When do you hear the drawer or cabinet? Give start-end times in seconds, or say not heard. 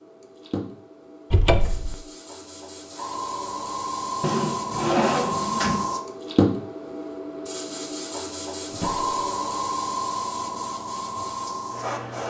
1.3-1.9, 4.2-5.9, 8.7-9.1.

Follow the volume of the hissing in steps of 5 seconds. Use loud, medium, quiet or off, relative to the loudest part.
medium, loud, loud.